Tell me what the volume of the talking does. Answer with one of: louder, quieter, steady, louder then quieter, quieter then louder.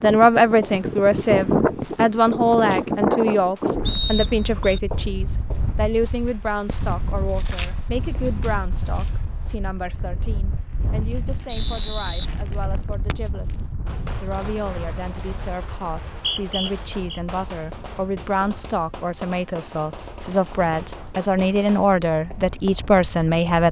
quieter then louder.